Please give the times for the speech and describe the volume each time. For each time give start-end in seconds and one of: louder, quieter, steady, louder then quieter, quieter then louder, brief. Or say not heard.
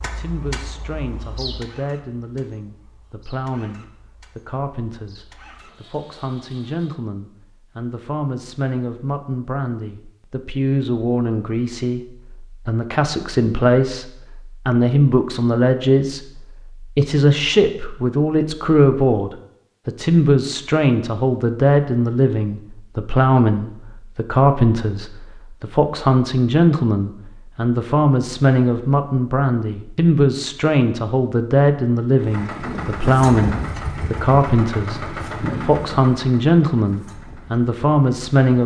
0.0-38.6 louder.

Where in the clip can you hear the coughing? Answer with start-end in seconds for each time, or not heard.
not heard.